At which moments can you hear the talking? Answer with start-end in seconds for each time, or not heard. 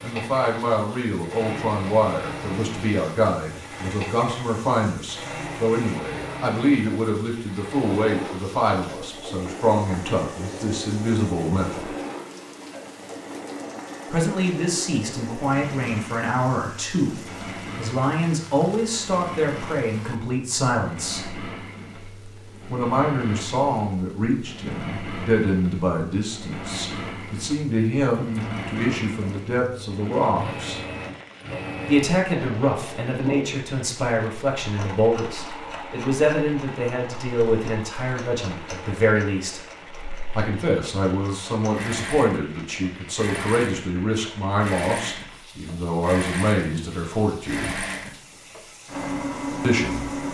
0.0-11.9, 14.1-21.4, 22.6-30.8, 31.9-39.6, 40.4-47.9, 49.6-50.2.